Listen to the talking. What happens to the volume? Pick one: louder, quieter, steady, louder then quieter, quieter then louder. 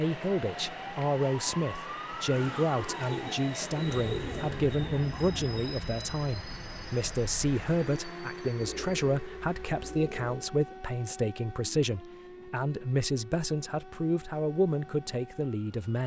steady.